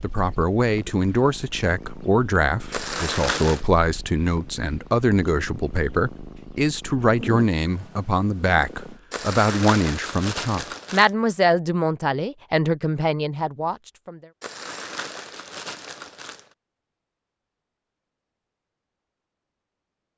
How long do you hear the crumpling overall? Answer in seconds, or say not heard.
5 s.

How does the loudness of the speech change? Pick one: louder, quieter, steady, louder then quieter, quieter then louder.
steady.